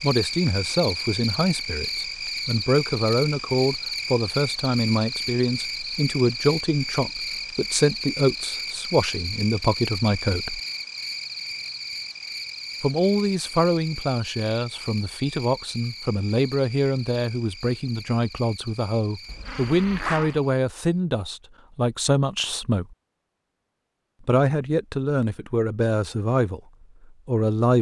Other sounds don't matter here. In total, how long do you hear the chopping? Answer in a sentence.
You can't hear the chopping here.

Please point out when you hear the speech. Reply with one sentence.
The speech can be heard from 0.0 to 10.6 s, from 12.8 to 22.9 s, from 24.2 to 26.6 s and from 27.2 to 27.7 s.